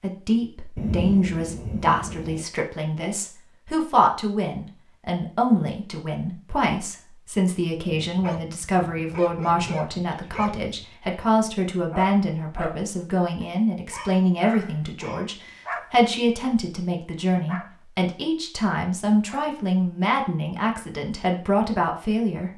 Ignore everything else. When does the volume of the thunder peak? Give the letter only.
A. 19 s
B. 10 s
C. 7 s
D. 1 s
D.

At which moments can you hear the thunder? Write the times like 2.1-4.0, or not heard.
0.8-2.5.